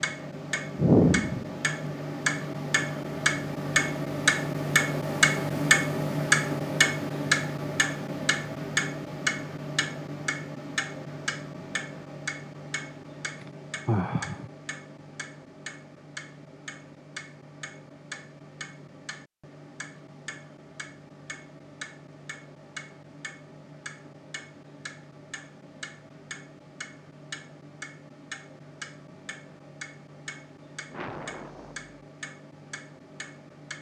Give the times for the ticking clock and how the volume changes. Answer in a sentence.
The ticking clock can be heard from 0.0 to 33.7 s, getting quieter.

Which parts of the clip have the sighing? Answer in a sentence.
The sighing can be heard from 0.8 to 1.4 s, from 13.4 to 14.5 s and from 30.9 to 31.9 s.